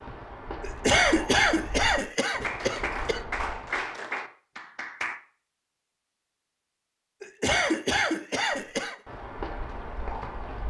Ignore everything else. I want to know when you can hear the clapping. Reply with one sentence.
The clapping can be heard from 2.4 to 5.2 s.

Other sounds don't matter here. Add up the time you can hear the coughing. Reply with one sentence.
You can hear the coughing for 4 seconds altogether.